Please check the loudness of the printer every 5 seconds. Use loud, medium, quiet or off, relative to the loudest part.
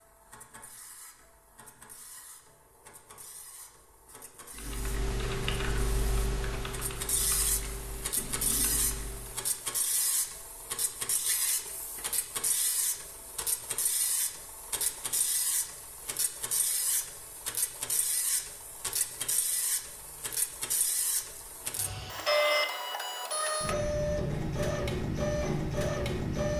quiet, medium, medium, medium, loud, loud.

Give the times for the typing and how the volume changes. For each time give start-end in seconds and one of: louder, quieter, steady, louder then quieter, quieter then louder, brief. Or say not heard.
4.5-9.6 quieter.